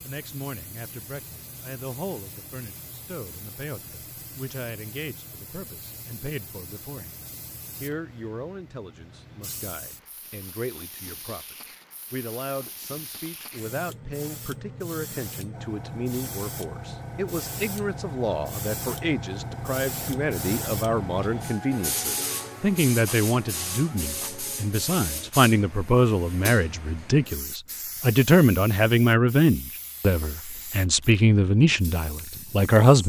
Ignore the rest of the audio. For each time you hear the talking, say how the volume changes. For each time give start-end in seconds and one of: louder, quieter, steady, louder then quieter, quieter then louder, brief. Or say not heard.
0.0-33.0 louder.